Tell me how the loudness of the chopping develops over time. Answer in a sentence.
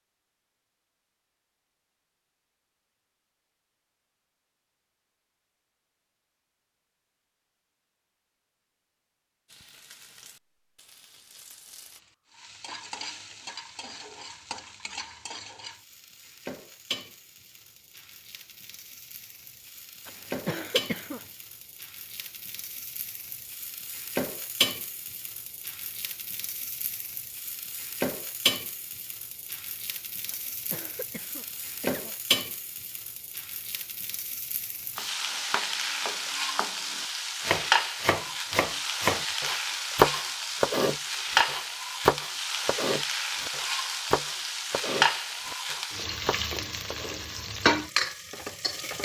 The loudness of the chopping goes up, then down.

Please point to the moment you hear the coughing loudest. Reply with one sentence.
The loudest moment of the coughing is at 21 seconds.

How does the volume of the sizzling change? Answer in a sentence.
The loudness of the sizzling goes up.